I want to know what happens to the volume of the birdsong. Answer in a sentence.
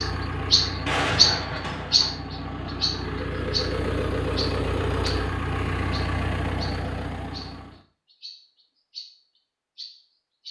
The loudness of the birdsong goes down.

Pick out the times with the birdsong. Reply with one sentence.
The birdsong can be heard from 0.0 to 5.3 s and from 5.9 to 10.4 s.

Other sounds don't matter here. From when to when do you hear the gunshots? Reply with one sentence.
The gunshots can be heard from 0.7 to 2.2 s.